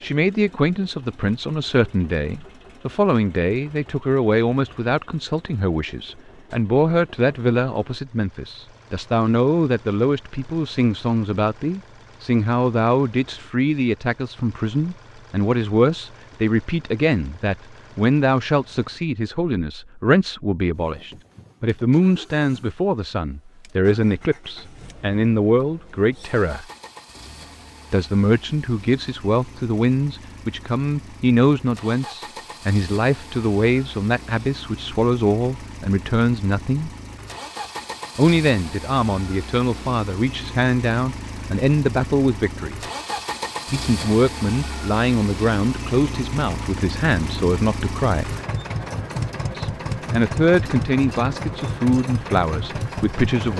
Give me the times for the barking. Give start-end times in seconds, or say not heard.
not heard.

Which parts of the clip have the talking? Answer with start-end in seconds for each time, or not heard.
0.0-26.6, 27.9-36.9, 38.1-42.8, 43.7-48.4, 49.5-53.5.